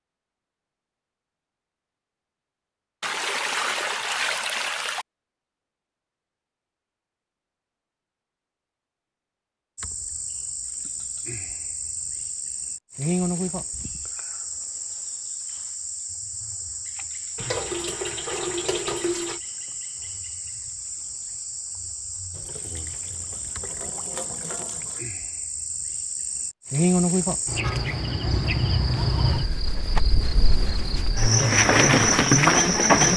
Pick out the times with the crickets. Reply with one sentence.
You can hear the crickets from 9.8 to 33.1 s.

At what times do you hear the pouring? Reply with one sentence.
The pouring can be heard from 3.0 to 5.0 s, from 17.4 to 19.4 s and from 22.3 to 25.1 s.